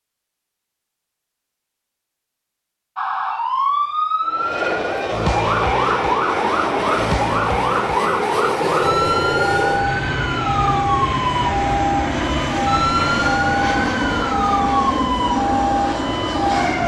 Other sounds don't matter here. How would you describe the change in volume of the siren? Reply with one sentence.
The loudness of the siren stays about the same.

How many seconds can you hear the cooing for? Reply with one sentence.
The cooing can't be heard in this clip.